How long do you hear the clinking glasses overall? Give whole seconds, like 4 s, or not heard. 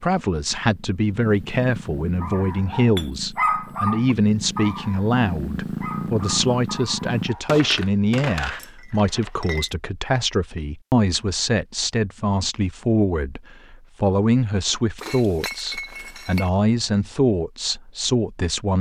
5 s.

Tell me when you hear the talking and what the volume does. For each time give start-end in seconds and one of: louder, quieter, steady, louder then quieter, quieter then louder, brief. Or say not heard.
0.0-18.7 steady.